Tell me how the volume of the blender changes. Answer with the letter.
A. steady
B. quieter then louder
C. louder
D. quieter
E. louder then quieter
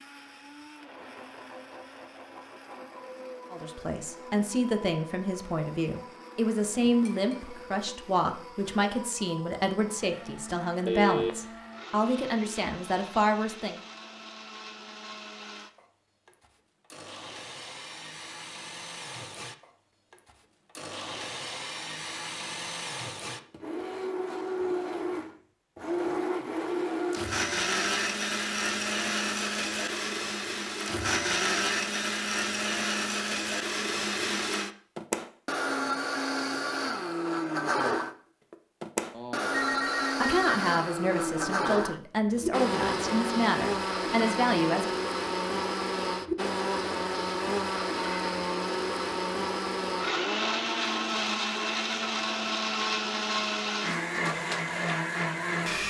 C.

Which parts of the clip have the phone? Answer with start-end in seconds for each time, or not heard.
10.8-11.3, 39.1-40.5.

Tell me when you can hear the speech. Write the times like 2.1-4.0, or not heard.
3.5-13.8, 40.2-44.9.